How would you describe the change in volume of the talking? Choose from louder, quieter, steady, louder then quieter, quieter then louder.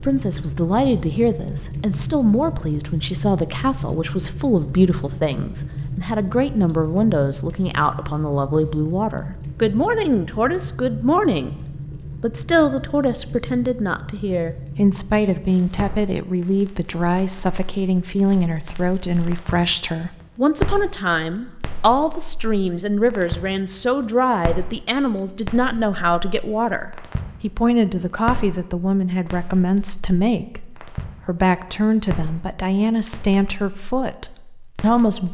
steady.